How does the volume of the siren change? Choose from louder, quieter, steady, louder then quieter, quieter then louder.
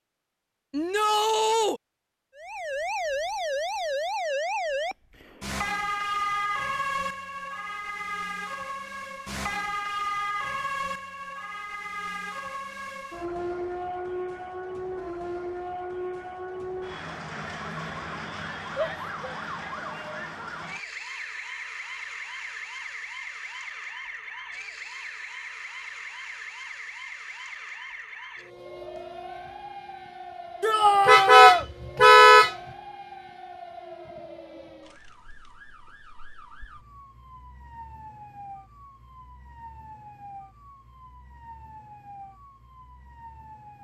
quieter.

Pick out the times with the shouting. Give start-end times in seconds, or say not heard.
0.7-1.8, 18.8-20.5, 30.6-31.6.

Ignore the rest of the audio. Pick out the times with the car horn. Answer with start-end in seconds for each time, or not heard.
31.1-32.5.